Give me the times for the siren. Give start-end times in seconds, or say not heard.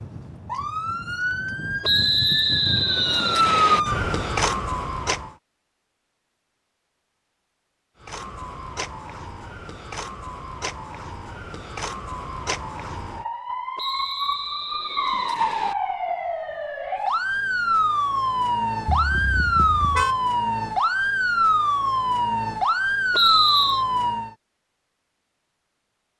0.0-5.3, 8.0-24.3.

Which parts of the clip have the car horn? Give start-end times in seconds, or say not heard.
18.9-20.1.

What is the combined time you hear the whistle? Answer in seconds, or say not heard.
5 s.